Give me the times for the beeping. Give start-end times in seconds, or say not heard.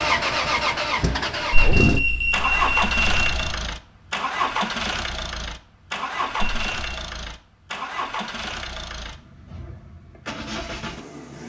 1.5-3.5, 6.3-6.8.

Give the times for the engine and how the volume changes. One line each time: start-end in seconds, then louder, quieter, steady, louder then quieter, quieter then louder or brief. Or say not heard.
0.0-11.4 quieter.